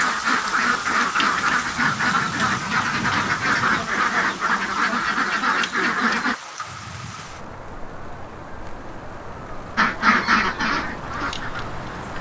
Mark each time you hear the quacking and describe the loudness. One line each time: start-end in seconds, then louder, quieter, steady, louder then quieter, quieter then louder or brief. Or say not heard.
0.0-6.3 steady
9.8-12.1 brief.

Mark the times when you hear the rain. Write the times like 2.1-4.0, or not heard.
0.0-12.1.